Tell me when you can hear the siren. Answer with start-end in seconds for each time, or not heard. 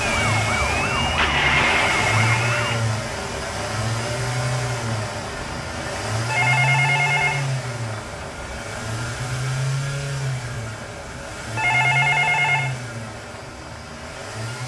0.0-2.8.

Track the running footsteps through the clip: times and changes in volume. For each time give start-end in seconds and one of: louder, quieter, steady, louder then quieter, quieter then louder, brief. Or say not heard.
not heard.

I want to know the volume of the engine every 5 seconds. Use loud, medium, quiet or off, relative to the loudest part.
loud, loud, medium.